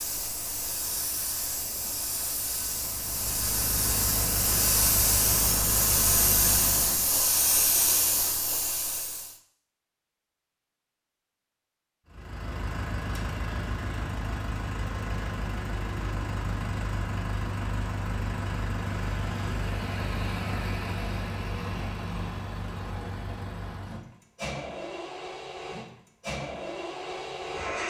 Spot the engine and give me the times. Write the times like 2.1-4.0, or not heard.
0.0-7.1, 12.1-27.8.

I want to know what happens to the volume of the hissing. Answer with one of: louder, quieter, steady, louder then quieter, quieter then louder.
louder.